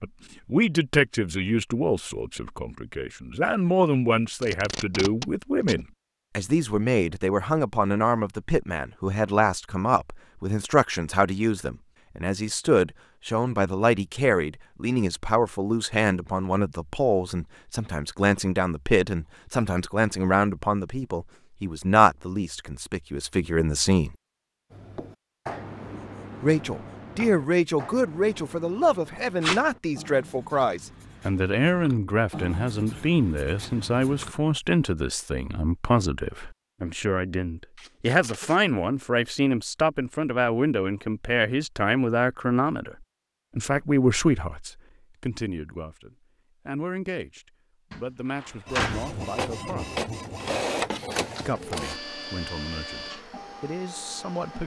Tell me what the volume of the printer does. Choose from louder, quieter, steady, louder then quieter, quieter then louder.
quieter.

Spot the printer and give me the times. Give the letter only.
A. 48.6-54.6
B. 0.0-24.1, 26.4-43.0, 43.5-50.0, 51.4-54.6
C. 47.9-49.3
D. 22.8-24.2
A.